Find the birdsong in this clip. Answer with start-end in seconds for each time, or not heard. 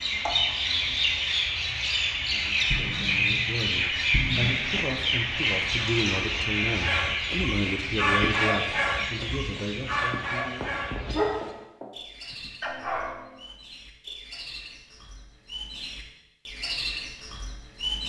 0.0-18.0.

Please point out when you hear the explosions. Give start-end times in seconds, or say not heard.
2.7-4.5.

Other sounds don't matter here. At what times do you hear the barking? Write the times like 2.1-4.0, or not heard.
6.7-13.4.